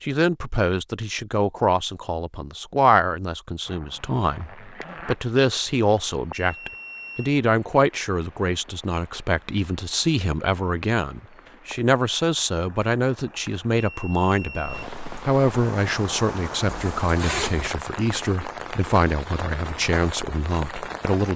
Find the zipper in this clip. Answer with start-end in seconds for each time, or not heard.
3.6-5.2, 16.6-17.8.